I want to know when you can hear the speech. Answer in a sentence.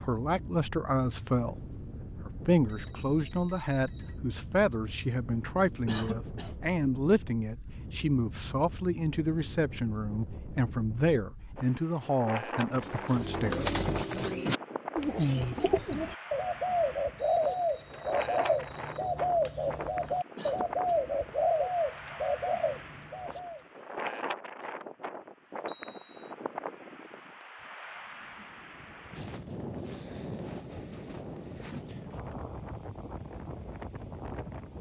The speech can be heard from 0.0 to 14.3 s.